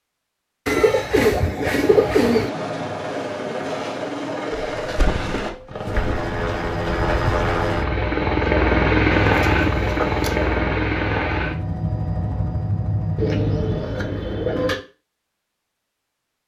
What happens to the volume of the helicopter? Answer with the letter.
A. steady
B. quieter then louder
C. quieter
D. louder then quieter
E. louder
D.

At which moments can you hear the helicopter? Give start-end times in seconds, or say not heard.
1.9-13.8.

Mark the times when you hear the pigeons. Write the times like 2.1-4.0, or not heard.
0.7-2.5, 4.5-6.2, 9.2-10.6, 13.2-14.8.